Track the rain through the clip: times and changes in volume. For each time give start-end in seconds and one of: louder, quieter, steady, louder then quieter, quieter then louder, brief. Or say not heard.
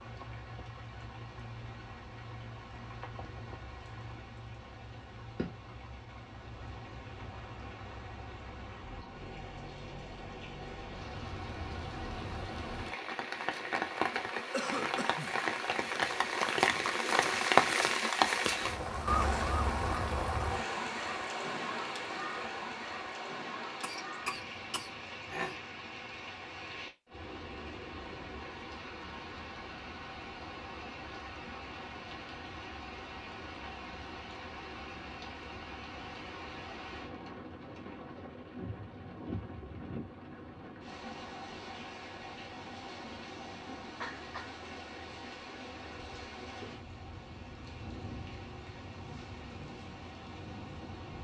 0.0-51.2 louder then quieter.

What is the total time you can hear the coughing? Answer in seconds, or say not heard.
3 s.